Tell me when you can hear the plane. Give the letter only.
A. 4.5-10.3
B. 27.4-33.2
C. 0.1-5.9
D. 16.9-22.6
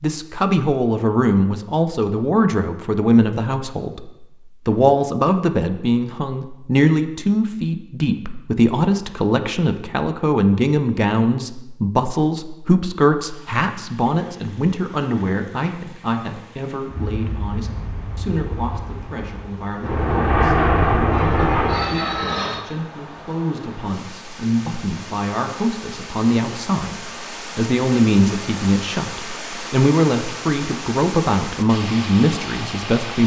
D.